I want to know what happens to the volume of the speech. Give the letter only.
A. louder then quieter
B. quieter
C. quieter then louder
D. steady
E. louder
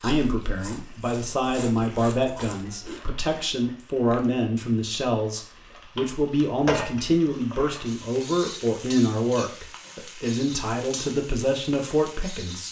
D.